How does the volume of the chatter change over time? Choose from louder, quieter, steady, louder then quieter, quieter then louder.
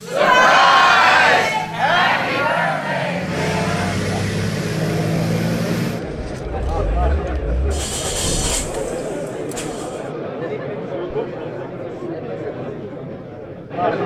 quieter.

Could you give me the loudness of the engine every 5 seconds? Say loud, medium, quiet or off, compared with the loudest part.
loud, loud, off.